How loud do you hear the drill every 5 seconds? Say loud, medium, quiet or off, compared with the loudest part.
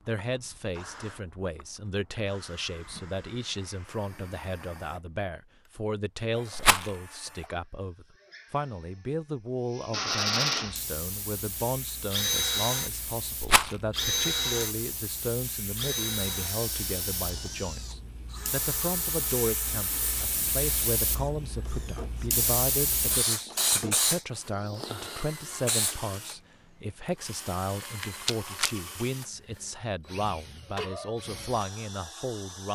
quiet, quiet, loud, medium, quiet, quiet, quiet.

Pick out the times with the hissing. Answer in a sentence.
The hissing can be heard from 10.6 to 25.9 s.